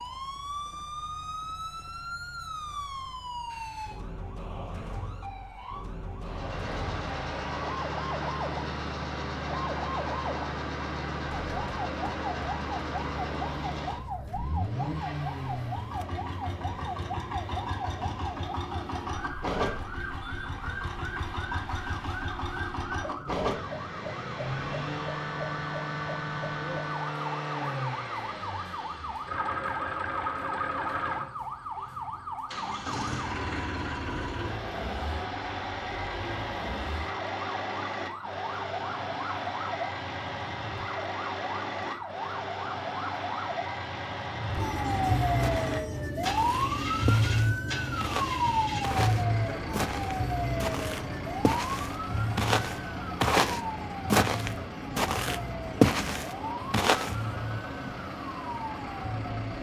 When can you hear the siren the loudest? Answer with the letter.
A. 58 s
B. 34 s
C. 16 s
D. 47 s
D.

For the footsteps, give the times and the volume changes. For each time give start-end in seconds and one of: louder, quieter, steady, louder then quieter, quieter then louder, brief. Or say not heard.
45.4-57.1 louder.